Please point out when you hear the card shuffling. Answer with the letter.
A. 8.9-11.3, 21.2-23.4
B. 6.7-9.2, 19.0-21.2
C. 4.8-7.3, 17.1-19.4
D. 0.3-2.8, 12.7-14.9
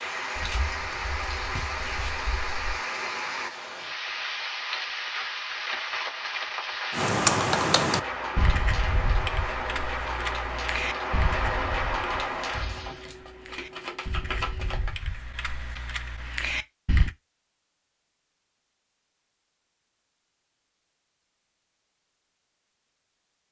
D.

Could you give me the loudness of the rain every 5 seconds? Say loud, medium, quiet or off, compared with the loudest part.
loud, loud, loud, off, off.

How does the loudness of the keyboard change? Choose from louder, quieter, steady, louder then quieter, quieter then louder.
quieter then louder.